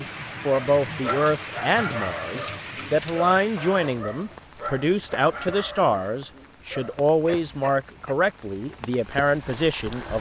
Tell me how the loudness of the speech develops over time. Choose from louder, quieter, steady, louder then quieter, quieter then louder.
steady.